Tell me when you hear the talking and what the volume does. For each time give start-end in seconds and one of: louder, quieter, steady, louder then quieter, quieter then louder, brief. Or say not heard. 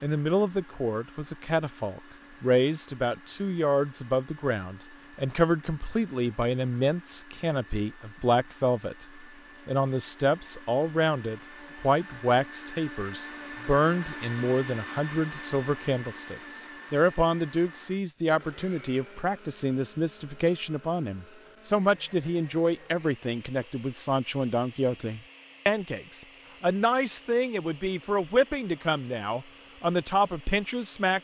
0.0-31.1 steady.